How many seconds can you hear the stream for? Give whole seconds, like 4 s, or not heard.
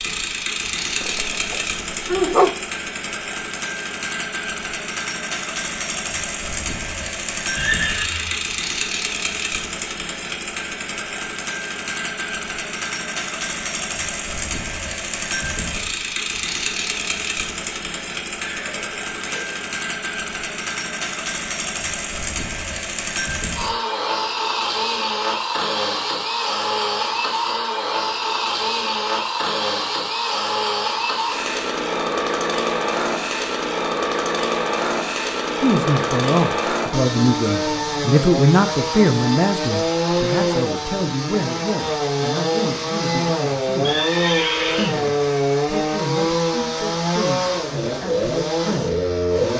not heard.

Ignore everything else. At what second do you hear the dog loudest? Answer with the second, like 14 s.
2 s.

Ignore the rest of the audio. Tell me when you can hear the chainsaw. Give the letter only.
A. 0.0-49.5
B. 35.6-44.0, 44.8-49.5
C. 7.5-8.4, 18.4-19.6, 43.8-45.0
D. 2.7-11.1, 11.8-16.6
A.